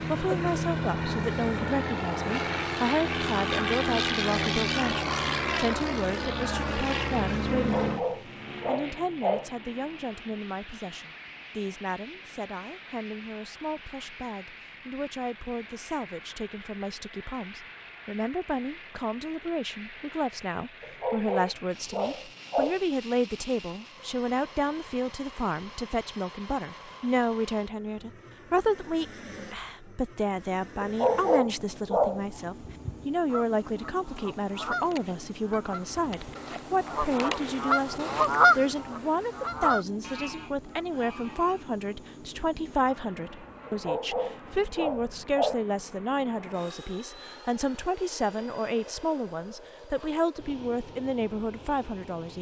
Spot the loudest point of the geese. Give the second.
38 s.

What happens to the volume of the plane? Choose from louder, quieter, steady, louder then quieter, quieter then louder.
quieter.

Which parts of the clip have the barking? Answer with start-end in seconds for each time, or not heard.
7.5-9.5, 20.8-22.8, 30.8-32.2, 43.6-45.6.